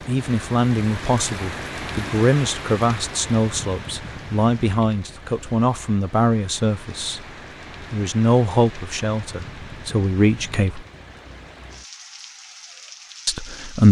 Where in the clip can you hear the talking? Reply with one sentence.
You can hear the talking from 0.1 to 7.2 s, from 7.9 to 10.8 s and from 13.2 to 13.8 s.